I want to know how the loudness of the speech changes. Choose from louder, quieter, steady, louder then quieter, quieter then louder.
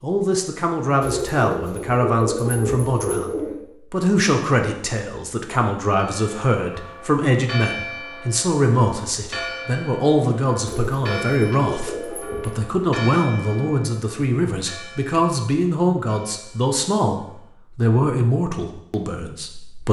steady.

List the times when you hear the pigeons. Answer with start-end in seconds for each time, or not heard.
1.0-3.6, 10.7-12.6.